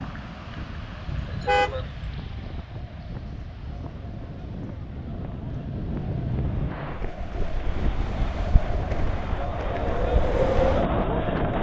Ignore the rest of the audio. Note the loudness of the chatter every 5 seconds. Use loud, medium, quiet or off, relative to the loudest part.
quiet, medium, loud.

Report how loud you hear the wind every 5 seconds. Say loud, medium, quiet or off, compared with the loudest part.
quiet, medium, loud.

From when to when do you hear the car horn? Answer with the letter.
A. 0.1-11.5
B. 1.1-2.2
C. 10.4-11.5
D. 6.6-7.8
B.